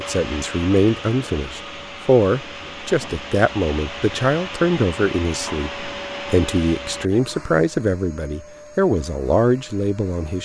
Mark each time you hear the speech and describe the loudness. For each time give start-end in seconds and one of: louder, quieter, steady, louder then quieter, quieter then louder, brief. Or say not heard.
0.0-10.4 steady.